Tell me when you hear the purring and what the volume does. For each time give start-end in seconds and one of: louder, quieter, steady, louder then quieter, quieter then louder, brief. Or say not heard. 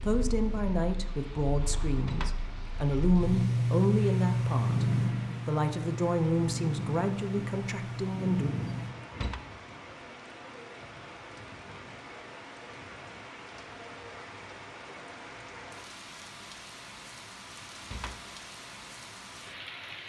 0.0-8.9 louder then quieter.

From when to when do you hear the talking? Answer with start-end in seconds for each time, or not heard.
0.0-8.5.